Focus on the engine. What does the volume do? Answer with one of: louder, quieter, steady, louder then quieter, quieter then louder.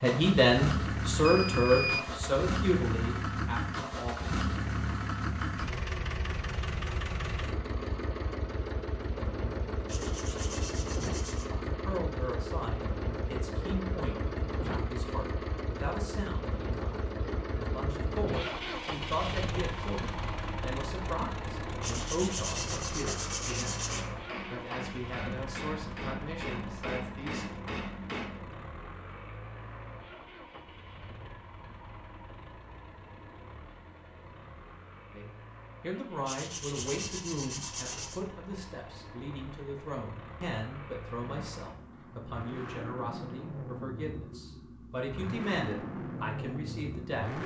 quieter then louder.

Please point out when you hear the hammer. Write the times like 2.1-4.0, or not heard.
22.7-28.4.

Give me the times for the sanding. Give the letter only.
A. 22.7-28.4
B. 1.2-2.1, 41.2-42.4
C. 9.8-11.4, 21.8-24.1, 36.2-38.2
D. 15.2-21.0
C.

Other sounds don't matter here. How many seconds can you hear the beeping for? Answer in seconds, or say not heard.
2 s.